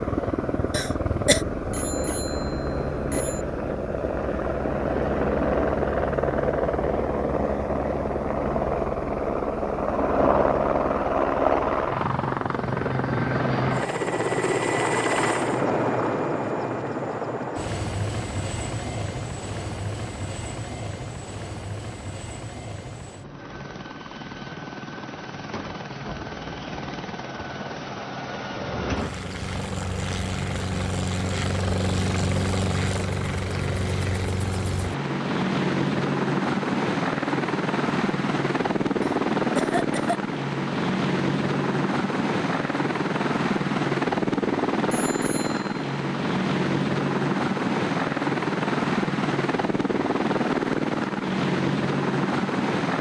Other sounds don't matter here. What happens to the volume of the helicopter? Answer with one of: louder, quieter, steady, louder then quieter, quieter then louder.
quieter then louder.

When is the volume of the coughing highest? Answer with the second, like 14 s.
1 s.